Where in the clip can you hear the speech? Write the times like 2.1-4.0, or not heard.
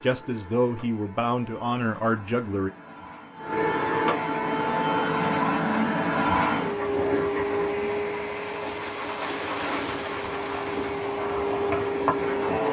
0.0-2.7.